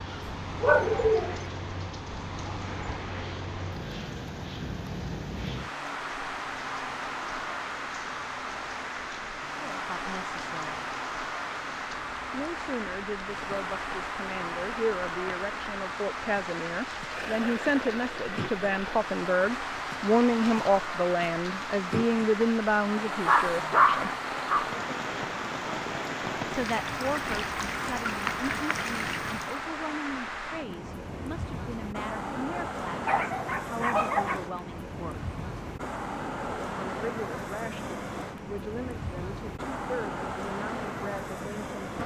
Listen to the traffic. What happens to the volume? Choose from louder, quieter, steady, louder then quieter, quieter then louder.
steady.